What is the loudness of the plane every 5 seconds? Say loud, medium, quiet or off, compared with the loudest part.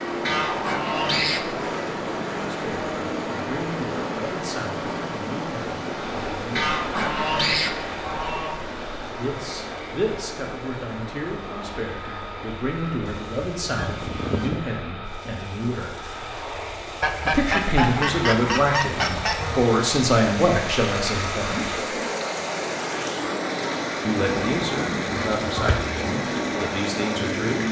loud, medium, medium, medium, loud, loud.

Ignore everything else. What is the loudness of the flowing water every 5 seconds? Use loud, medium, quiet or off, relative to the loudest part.
loud, loud, medium, medium, loud, loud.